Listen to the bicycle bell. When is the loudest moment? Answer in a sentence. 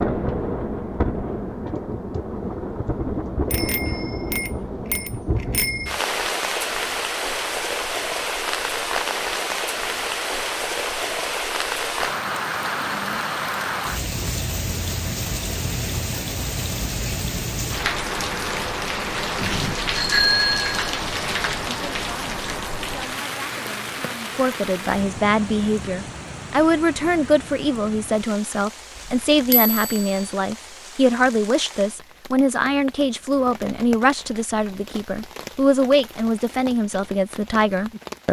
The volume of the bicycle bell peaks at 20 seconds.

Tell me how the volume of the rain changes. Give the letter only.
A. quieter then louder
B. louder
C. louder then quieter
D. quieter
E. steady
D.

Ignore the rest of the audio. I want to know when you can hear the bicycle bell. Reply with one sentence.
You can hear the bicycle bell from 3.5 to 6.0 s, from 19.4 to 20.8 s and from 29.5 to 30.2 s.